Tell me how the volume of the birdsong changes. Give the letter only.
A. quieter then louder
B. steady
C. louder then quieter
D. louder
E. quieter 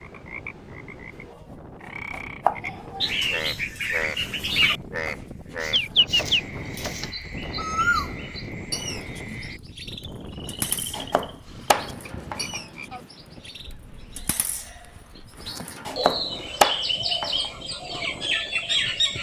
A.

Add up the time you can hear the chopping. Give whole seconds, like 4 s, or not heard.
7 s.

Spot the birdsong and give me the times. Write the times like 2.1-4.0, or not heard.
3.0-19.1.